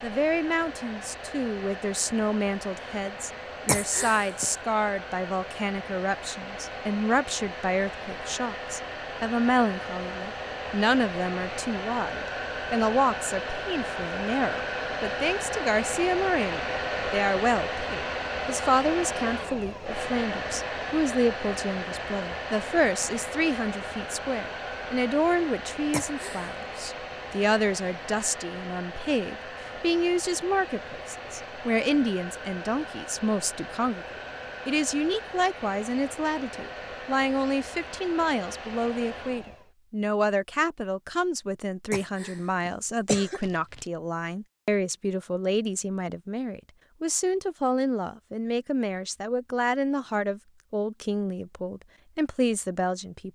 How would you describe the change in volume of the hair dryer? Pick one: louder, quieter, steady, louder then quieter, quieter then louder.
louder then quieter.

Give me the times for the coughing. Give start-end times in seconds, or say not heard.
3.6-4.5, 25.9-26.5, 41.9-43.9.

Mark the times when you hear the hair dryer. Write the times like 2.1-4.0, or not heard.
0.0-39.7.